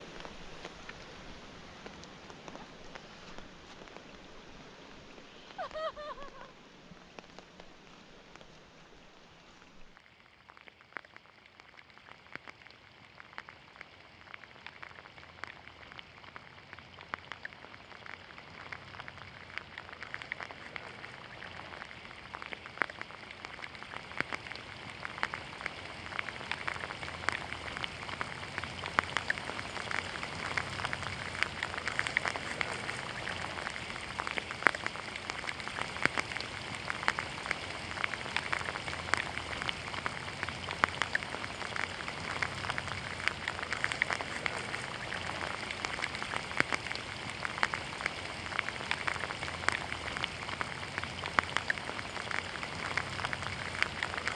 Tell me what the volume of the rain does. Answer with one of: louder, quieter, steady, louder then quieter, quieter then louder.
louder.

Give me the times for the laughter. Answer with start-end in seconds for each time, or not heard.
5.5-6.5.